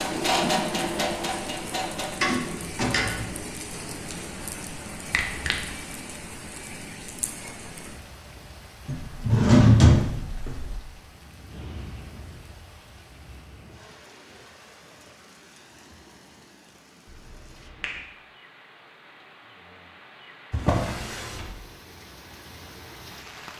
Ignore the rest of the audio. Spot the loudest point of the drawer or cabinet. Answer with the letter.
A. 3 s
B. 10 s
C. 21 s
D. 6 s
B.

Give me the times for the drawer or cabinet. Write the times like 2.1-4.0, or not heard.
2.2-3.4, 8.8-10.8, 20.5-21.5.